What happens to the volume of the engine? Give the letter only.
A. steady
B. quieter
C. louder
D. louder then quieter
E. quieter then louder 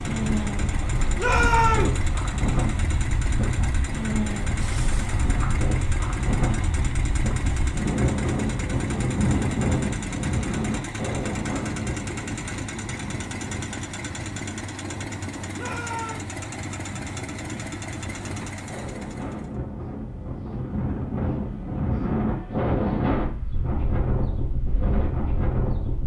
A.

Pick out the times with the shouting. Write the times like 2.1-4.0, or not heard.
1.1-2.0, 15.6-16.2.